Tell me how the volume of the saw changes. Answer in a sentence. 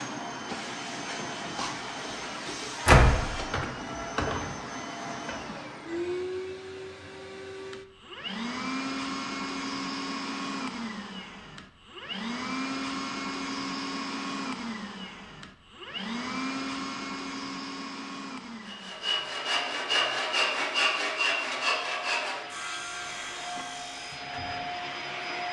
The loudness of the saw goes down.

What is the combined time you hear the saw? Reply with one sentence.
You can hear the saw for 6 seconds altogether.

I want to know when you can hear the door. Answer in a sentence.
The door can be heard from 2.9 to 3.6 s.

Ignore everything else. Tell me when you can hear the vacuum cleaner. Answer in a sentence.
The vacuum cleaner can be heard from 0.0 to 25.4 s.